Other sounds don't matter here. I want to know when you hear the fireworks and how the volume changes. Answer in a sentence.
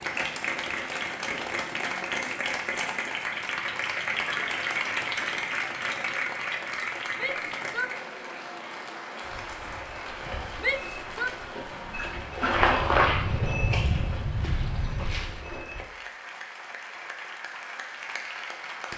The fireworks can't be heard in this clip.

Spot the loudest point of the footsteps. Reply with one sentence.
The loudest moment of the footsteps is at 13 seconds.